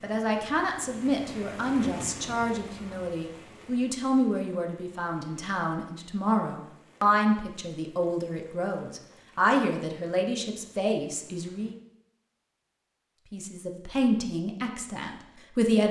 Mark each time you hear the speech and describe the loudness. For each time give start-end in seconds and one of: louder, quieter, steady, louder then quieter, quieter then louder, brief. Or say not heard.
0.0-11.8 steady
13.3-15.8 brief.